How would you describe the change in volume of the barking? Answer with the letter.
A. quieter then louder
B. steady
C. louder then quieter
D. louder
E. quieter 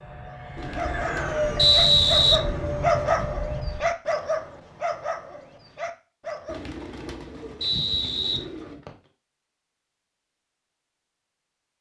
C.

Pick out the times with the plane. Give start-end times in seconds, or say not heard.
0.0-3.9.